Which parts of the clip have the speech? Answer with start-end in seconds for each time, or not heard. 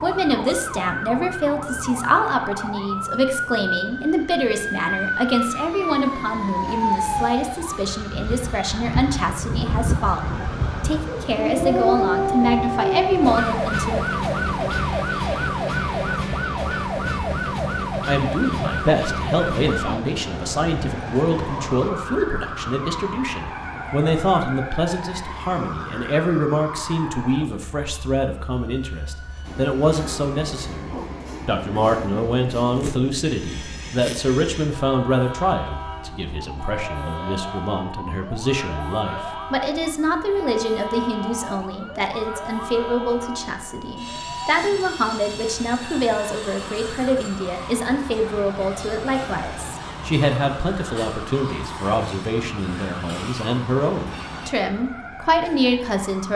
0.0-14.1, 18.1-56.3.